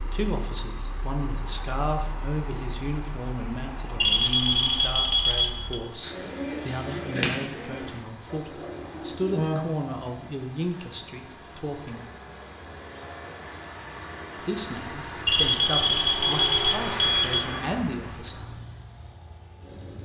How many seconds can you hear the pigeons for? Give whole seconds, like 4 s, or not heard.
4 s.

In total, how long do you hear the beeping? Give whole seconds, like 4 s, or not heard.
4 s.